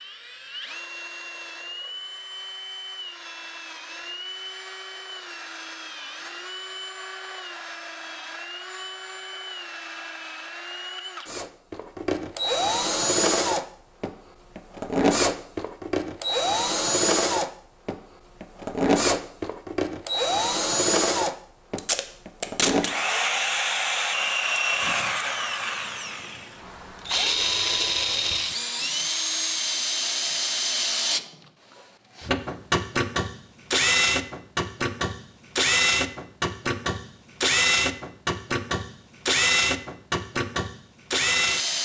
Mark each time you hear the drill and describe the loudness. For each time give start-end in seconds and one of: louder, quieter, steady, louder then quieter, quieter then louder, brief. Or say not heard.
0.0-31.2 louder
32.1-41.7 steady.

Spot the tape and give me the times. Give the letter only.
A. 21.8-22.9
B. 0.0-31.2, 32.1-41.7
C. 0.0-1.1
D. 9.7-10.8
A.